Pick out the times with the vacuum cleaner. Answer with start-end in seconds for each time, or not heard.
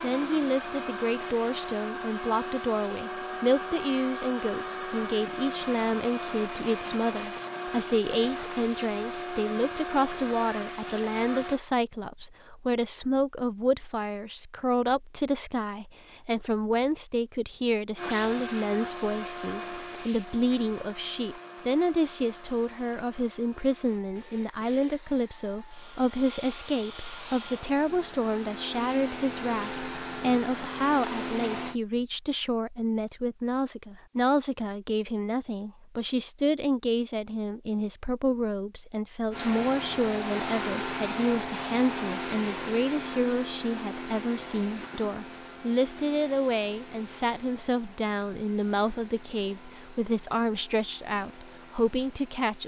0.0-11.6, 17.9-31.8, 39.3-52.6.